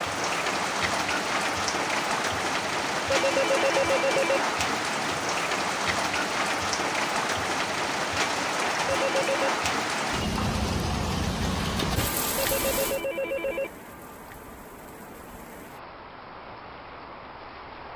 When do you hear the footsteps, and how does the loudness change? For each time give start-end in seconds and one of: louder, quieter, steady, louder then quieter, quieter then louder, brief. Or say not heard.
not heard.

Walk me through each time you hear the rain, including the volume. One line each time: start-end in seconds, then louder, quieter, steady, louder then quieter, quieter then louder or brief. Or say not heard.
0.0-17.9 quieter.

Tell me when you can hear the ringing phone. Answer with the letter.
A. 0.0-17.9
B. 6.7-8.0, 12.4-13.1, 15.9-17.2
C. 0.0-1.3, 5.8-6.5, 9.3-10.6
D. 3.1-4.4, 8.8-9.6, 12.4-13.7
D.